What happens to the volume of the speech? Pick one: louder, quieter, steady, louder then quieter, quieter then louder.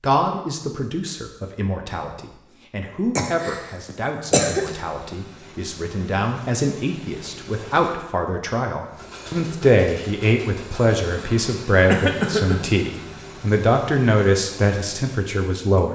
louder.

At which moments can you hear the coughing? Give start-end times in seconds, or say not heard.
3.1-4.8, 11.8-12.7.